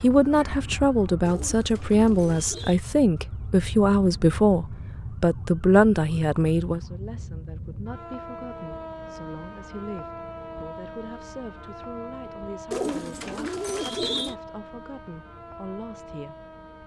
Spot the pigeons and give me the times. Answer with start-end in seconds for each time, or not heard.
1.2-2.8, 12.7-14.3.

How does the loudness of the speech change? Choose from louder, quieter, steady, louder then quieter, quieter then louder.
quieter.